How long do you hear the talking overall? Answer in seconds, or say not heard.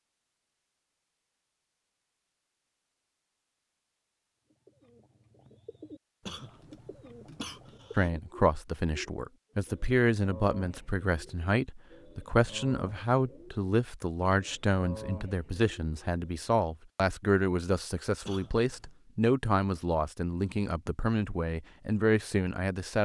15 s.